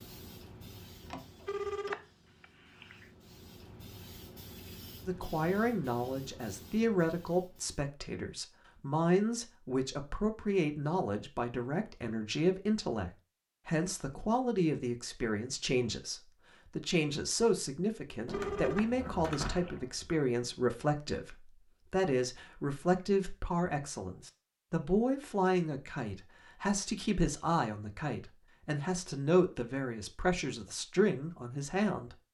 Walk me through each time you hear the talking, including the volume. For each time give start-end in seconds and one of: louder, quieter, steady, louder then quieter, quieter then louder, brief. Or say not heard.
5.0-32.1 steady.